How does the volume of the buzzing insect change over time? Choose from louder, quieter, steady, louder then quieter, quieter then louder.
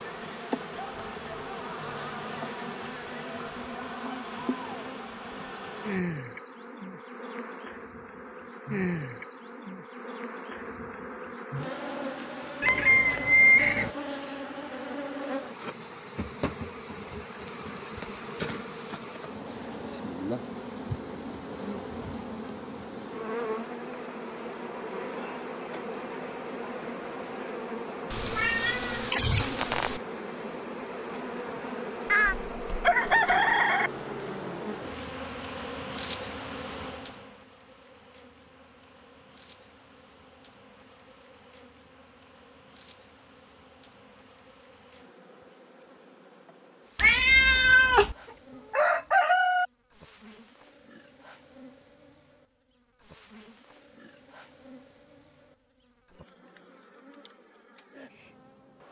quieter.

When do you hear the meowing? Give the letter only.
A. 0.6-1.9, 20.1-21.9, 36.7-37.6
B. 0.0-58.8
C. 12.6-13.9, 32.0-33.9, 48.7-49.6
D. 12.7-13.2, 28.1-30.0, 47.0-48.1
D.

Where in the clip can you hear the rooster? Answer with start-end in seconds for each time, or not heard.
12.6-13.9, 32.0-33.9, 48.7-49.6.